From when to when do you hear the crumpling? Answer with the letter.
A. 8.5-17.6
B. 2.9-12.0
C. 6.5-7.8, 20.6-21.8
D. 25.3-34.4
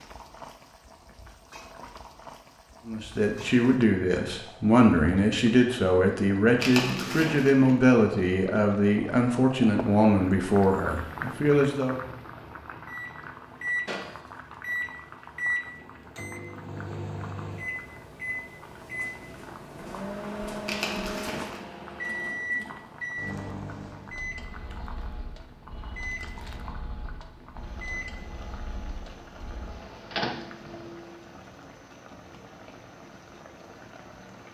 C.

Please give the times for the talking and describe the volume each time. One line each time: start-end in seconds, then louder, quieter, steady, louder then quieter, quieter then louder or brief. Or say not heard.
2.9-12.0 steady.